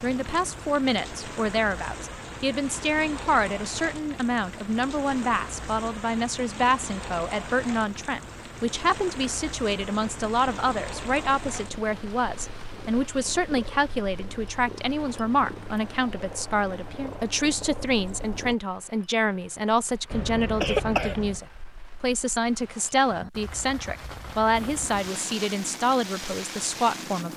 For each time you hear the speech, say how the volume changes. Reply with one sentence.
The speech can be heard from 0.0 to 27.3 s, at a steady volume.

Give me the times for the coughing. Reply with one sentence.
You can hear the coughing from 20.1 to 21.4 s.